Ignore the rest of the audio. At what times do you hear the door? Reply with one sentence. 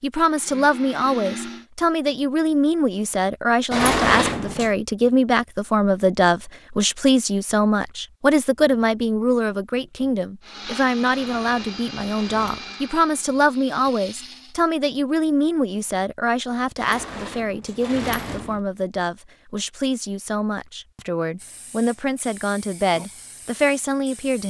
The door can be heard from 3.7 to 4.7 s, from 11.1 to 12.6 s and from 16.8 to 18.6 s.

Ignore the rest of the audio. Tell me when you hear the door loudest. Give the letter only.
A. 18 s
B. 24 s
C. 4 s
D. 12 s
C.